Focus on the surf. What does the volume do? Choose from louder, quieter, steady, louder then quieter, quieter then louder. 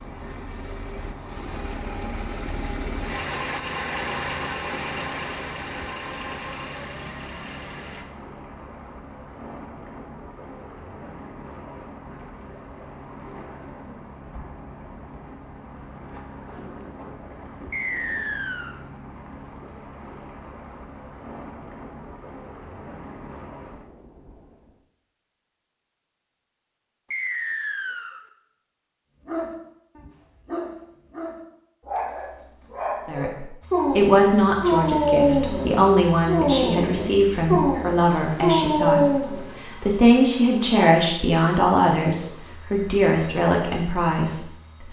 steady.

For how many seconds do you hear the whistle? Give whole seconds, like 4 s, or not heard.
2 s.